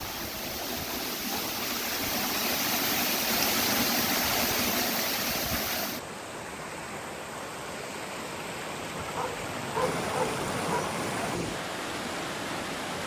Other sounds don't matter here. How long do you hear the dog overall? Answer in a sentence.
You can hear the dog for 2 seconds altogether.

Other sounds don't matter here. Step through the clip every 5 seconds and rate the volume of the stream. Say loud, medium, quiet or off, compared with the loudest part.
loud, medium, loud.